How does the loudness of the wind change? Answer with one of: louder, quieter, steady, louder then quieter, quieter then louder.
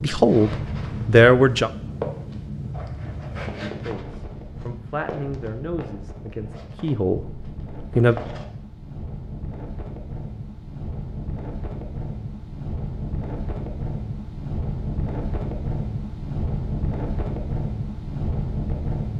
quieter then louder.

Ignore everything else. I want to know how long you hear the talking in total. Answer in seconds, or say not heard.
6 s.